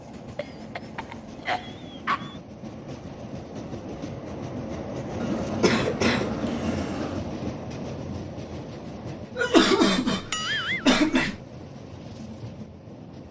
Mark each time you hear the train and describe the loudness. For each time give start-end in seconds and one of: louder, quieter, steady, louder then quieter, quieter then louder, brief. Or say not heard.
0.0-13.2 louder then quieter.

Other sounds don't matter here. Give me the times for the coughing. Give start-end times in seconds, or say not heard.
0.3-2.4, 5.2-7.2, 9.3-11.3.